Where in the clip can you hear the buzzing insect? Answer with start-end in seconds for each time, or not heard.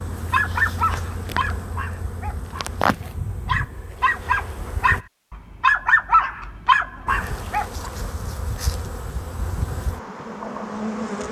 0.0-5.0, 7.0-11.2.